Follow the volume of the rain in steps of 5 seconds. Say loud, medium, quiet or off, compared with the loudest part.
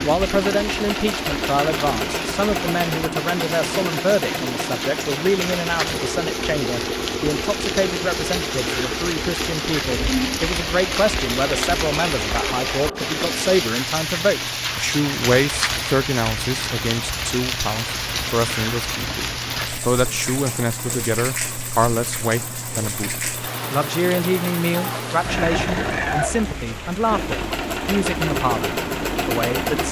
medium, loud, loud, loud, medium, medium.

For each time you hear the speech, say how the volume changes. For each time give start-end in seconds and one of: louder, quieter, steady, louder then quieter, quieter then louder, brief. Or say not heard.
0.0-29.8 steady.